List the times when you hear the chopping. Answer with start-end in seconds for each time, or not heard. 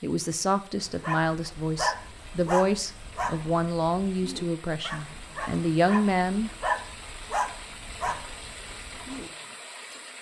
not heard.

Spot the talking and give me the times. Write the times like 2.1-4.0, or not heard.
0.0-6.5.